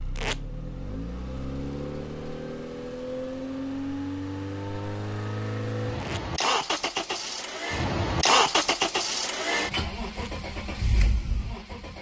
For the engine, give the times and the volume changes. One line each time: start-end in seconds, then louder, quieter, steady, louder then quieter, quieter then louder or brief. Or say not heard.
0.0-11.9 louder then quieter.